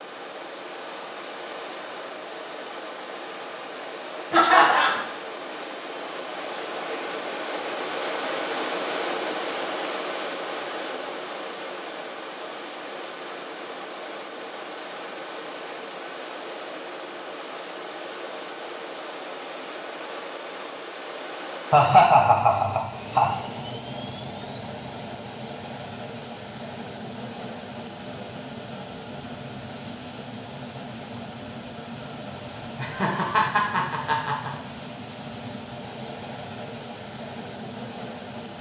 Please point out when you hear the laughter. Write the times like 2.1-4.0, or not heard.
4.3-5.0, 21.7-23.3, 32.8-34.5.